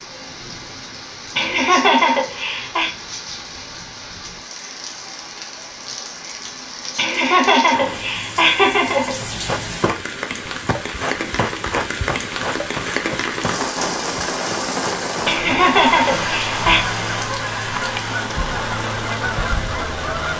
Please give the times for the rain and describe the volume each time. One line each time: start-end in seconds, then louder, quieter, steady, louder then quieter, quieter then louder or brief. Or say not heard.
0.0-20.3 louder.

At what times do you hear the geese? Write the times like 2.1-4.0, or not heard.
15.2-20.3.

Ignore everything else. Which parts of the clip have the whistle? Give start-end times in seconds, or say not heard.
not heard.